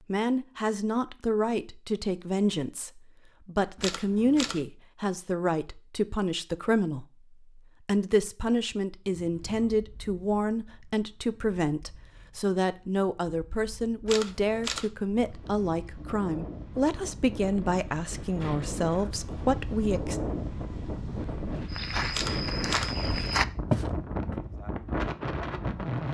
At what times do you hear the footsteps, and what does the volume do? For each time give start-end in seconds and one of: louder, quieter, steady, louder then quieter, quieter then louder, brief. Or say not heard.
21.7-25.8 louder then quieter.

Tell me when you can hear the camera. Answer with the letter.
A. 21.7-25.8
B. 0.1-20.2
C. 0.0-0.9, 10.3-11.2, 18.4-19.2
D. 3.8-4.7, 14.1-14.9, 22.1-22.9
D.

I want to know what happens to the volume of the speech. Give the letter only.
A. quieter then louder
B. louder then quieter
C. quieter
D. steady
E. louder
D.